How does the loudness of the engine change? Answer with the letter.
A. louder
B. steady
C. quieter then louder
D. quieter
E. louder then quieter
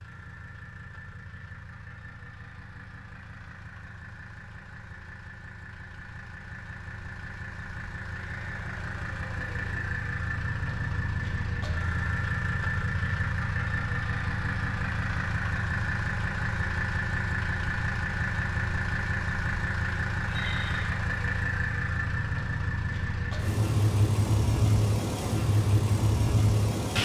A.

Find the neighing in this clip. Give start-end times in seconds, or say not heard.
8.2-9.8, 20.2-20.9.